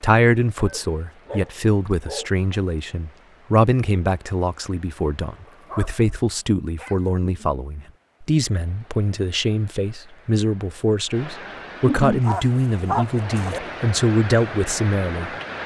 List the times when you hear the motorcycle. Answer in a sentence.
You can't hear the motorcycle here.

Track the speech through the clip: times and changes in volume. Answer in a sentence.
The speech can be heard from 0.0 to 15.6 s, at a steady volume.